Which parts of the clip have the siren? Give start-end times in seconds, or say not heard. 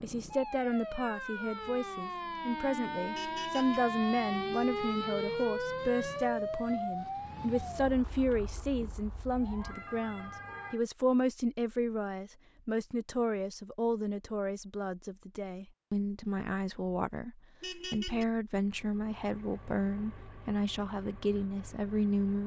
0.0-10.8.